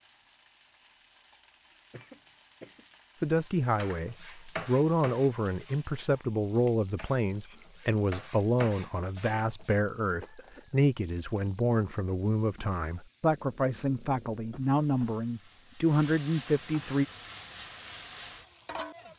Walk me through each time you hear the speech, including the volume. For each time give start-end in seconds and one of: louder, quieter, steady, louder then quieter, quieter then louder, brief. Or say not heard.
3.2-17.1 steady.